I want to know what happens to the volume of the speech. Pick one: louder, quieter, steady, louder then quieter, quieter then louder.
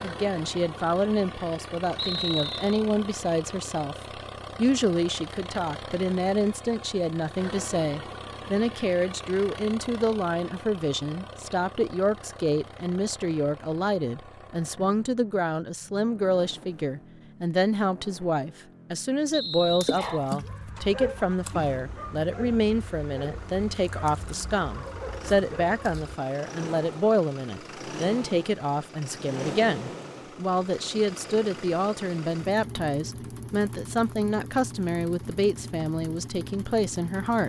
steady.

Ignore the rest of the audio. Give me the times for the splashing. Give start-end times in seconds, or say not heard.
19.8-20.5.